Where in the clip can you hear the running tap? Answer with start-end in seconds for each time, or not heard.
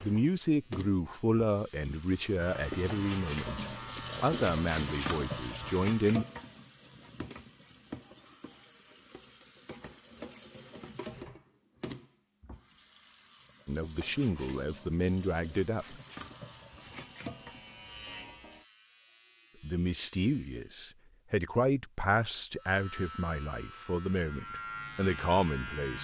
0.0-17.9.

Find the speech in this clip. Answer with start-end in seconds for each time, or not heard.
0.0-6.2, 13.7-16.0, 19.6-25.9.